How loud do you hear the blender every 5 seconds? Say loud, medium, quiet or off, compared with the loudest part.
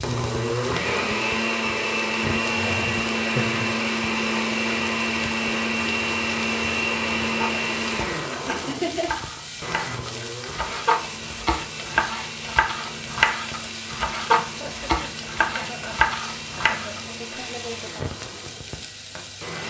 loud, loud, quiet, quiet.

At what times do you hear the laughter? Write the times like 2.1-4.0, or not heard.
2.4-3.8, 8.4-9.1, 14.4-16.9.